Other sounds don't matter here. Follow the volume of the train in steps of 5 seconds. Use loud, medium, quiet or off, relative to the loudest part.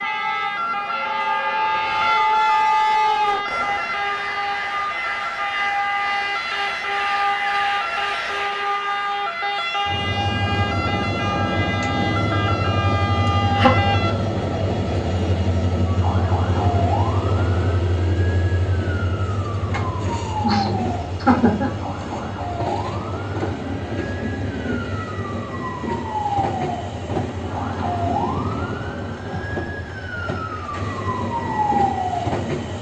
loud, medium, loud, loud, medium, medium, medium.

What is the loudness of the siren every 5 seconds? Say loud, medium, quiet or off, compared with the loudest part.
loud, loud, loud, medium, medium, medium, loud.